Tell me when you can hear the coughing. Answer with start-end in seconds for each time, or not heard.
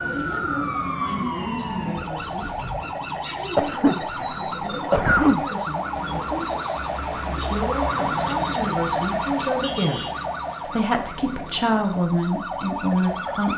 3.5-5.5.